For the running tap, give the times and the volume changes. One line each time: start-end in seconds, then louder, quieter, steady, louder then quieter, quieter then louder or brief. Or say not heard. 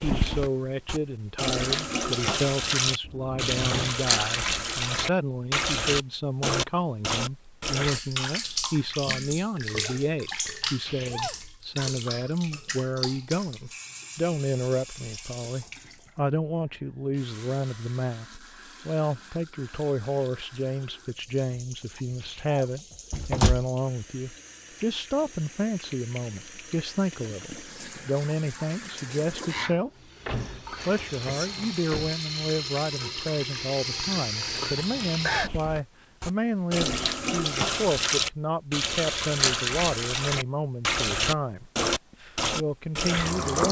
0.0-43.6 quieter then louder.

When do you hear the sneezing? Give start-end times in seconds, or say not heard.
10.6-11.4, 21.9-22.6, 34.8-35.6.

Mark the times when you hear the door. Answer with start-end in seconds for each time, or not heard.
3.0-4.0, 23.1-23.6, 30.2-32.1.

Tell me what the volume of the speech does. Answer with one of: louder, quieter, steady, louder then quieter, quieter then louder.
steady.